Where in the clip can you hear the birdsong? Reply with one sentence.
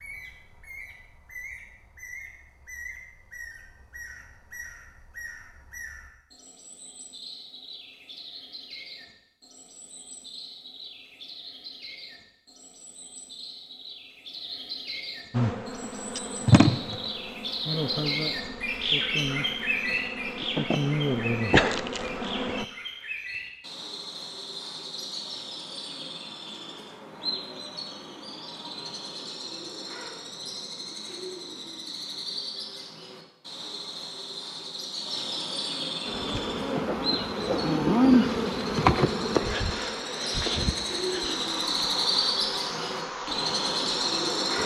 The birdsong can be heard from 0.0 to 44.6 s.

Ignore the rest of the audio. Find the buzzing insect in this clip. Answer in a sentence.
The buzzing insect can be heard from 15.3 to 22.6 s and from 36.0 to 44.6 s.